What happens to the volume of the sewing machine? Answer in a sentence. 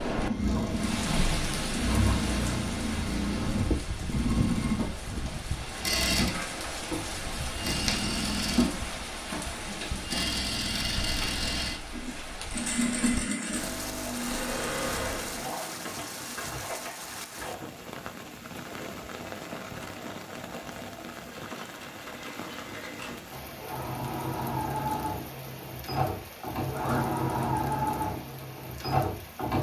The loudness of the sewing machine goes down, then up.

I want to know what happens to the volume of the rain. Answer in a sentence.
The volume of the rain goes down.